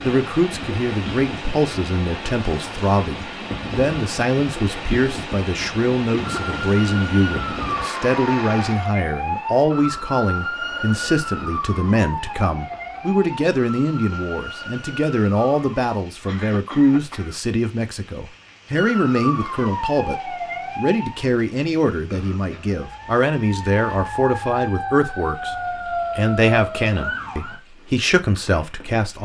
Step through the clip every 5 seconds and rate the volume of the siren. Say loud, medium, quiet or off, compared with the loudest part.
off, loud, loud, loud, loud, loud.